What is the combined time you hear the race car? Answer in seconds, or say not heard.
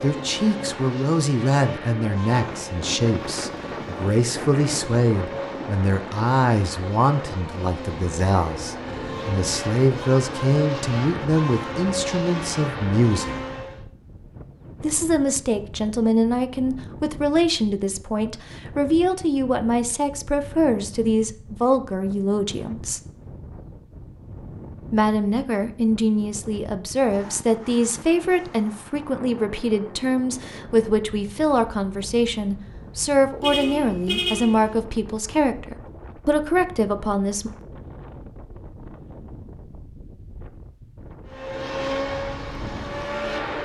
16 s.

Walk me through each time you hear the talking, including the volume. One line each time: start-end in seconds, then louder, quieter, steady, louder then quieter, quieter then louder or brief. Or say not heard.
0.0-13.3 steady
14.8-23.0 steady
24.9-37.5 steady.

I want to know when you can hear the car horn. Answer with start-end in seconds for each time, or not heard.
33.4-34.8.